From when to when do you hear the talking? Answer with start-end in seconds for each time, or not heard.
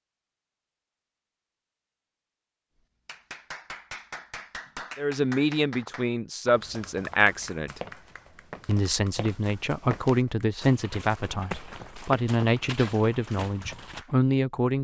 5.0-7.8, 8.7-14.7.